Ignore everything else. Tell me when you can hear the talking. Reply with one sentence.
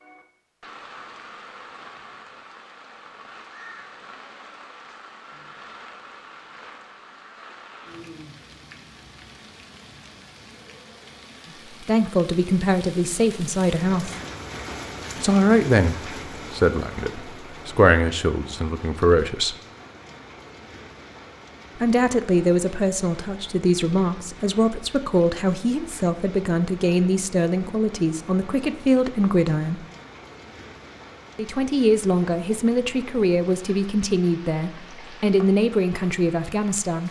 You can hear the talking from 11.8 to 14.2 s, from 15.2 to 19.6 s, from 21.8 to 29.9 s and from 31.4 to 37.0 s.